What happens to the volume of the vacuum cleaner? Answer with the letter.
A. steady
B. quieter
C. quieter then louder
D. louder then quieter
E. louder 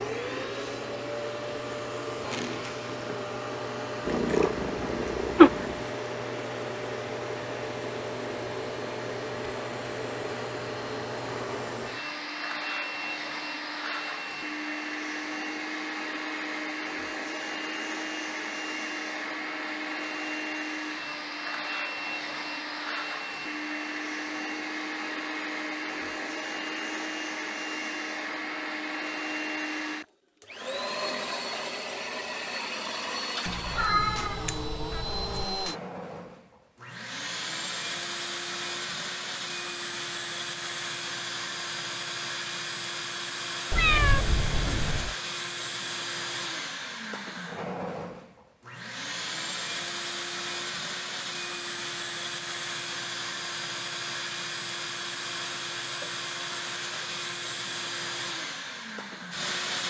A.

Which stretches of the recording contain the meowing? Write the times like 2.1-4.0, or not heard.
4.0-5.8, 33.5-35.5, 43.7-45.1.